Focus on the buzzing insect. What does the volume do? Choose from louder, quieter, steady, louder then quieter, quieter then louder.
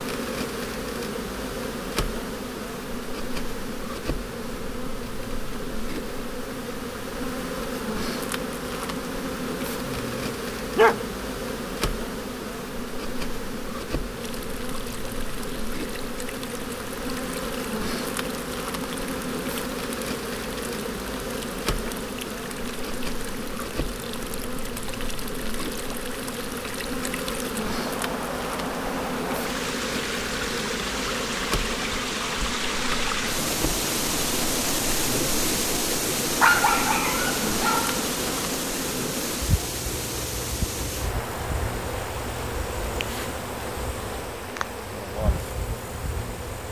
steady.